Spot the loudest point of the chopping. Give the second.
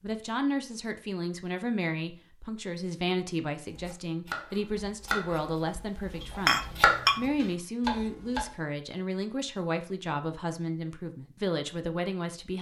7 s.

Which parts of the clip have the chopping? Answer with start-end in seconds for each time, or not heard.
3.7-8.5.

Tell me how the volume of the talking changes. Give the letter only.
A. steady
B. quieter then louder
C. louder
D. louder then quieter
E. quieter
A.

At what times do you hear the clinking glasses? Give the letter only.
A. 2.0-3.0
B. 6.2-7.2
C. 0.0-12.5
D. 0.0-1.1
B.